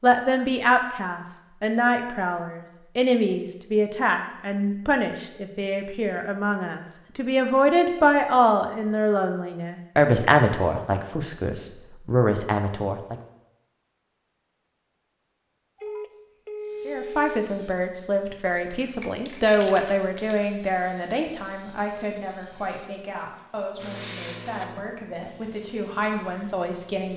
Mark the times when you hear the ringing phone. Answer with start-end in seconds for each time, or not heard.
15.8-17.3.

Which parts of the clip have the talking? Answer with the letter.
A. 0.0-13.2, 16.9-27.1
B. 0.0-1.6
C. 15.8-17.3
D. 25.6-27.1
A.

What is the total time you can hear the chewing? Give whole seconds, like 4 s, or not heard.
not heard.